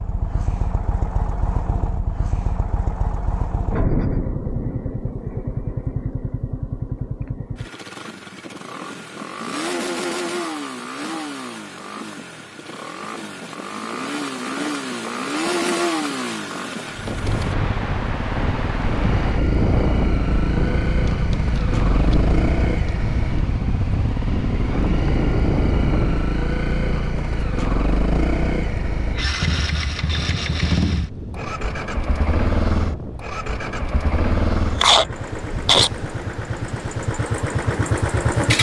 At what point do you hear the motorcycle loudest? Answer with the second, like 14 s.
35 s.